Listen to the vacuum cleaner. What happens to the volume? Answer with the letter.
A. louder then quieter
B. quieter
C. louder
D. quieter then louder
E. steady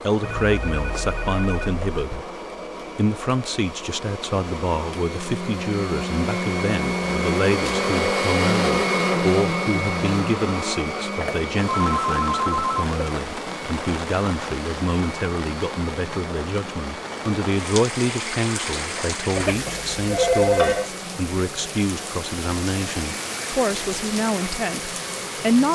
A.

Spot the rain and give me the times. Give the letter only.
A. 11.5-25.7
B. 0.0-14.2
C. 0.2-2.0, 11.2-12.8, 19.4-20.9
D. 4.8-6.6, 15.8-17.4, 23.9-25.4
A.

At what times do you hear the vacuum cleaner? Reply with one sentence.
The vacuum cleaner can be heard from 0.0 to 25.7 s.